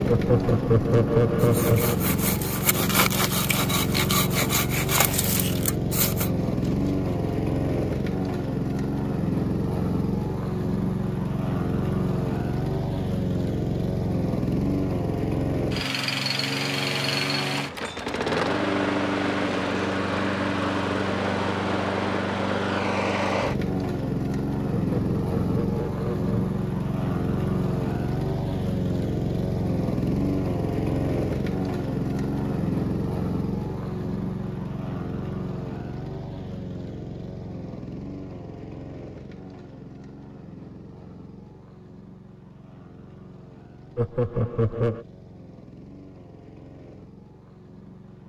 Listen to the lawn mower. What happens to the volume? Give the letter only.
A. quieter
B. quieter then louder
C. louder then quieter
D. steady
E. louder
A.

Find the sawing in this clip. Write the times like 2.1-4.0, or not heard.
1.4-7.3.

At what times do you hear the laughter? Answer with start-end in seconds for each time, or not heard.
0.1-1.9, 24.8-26.6, 44.0-45.0.